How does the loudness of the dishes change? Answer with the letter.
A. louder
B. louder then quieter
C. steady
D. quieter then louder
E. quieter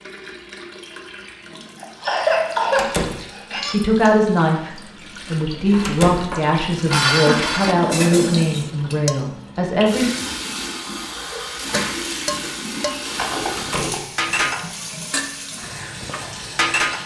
D.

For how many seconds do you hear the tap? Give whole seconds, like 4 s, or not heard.
17 s.